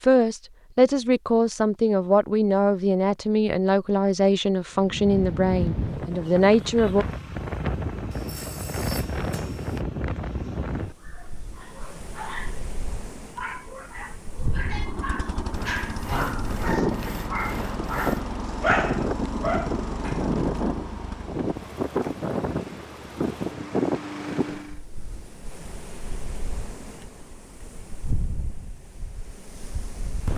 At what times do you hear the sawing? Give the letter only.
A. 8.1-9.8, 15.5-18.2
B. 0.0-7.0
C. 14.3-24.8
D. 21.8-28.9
A.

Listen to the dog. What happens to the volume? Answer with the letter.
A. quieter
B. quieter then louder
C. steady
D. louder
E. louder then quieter
D.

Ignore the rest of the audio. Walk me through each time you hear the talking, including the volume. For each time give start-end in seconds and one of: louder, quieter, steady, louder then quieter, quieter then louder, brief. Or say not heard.
0.0-7.0 steady.